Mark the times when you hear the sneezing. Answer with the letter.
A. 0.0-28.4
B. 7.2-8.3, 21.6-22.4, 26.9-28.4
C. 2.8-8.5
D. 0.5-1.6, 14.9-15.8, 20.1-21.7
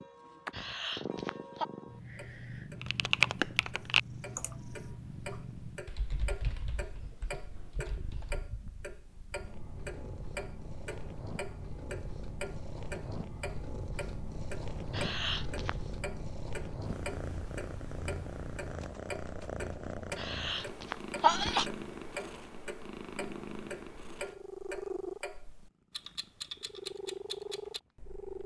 D.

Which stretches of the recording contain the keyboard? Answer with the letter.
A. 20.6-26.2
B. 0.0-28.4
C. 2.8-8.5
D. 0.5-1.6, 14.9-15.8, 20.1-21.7
C.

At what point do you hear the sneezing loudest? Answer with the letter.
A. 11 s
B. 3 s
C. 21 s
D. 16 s
C.